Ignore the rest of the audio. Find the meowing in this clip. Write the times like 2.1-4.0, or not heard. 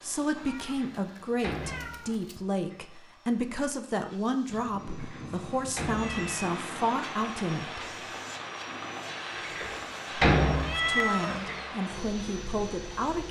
0.3-2.4, 4.5-6.5, 10.5-11.4.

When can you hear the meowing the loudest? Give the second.
11 s.